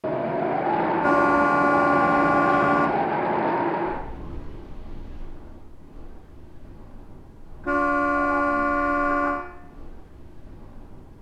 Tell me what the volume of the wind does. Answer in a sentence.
The loudness of the wind goes down.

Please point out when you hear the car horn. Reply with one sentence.
The car horn can be heard from 1.0 to 3.0 s and from 7.6 to 9.4 s.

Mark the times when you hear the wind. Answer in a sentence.
The wind can be heard from 0.0 to 11.1 s.